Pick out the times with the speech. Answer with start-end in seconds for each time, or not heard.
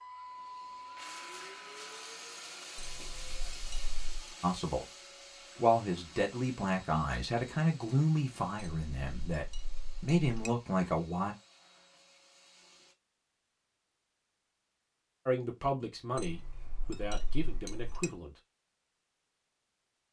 4.4-4.8, 5.5-11.3, 15.2-18.4.